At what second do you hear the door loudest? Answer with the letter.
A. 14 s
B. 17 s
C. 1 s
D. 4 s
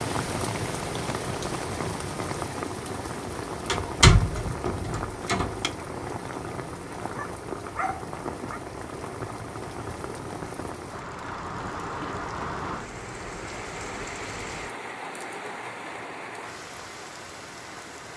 D.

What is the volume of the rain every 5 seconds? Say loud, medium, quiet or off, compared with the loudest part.
loud, loud, loud, medium.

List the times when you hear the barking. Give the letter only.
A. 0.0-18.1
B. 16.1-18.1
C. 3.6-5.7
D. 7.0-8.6
D.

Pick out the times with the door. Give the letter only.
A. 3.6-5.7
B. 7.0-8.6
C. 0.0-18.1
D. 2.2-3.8
A.